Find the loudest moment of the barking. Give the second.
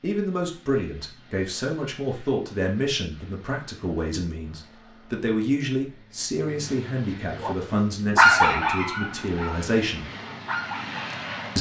8 s.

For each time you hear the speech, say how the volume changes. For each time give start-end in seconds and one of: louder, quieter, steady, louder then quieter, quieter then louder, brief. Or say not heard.
0.0-10.1 steady.